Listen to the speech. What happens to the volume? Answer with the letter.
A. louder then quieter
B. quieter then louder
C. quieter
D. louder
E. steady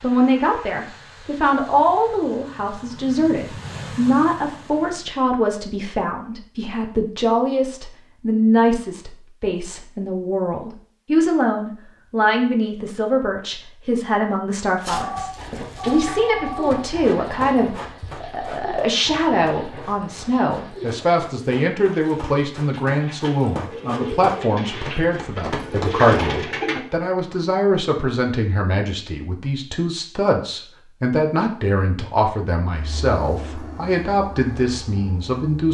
E.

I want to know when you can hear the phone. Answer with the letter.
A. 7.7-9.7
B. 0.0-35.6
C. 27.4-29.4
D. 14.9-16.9
D.